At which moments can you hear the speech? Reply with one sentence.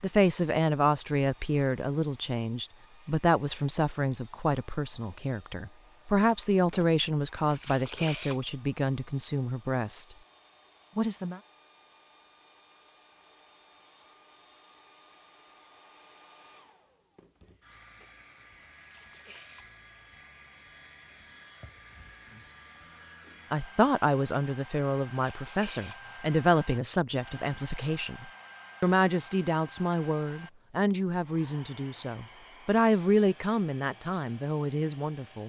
You can hear the speech from 0.0 to 10.2 s, from 10.9 to 11.4 s and from 23.5 to 35.4 s.